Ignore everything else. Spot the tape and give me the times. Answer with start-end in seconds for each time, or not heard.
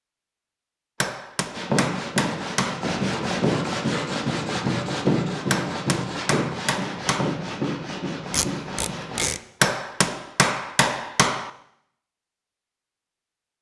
8.3-9.4.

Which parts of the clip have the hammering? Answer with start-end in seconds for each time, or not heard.
1.0-2.9, 5.5-7.3, 9.6-11.5.